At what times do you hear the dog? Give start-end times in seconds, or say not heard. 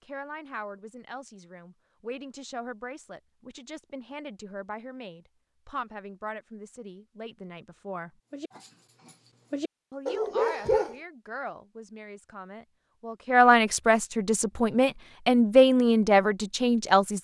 8.3-10.9.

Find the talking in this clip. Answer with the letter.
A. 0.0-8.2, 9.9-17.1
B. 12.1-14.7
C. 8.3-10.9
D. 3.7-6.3
A.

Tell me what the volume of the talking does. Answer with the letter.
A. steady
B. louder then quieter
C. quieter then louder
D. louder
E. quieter
D.